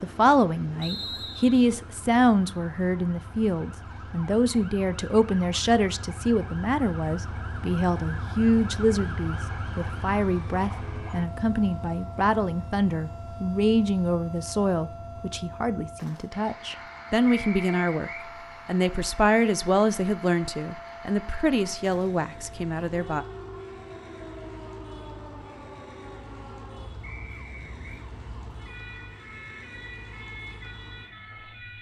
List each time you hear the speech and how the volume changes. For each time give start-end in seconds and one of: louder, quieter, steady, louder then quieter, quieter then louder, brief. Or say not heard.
0.0-23.2 steady.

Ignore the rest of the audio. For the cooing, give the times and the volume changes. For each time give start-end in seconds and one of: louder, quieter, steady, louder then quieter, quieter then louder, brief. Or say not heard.
not heard.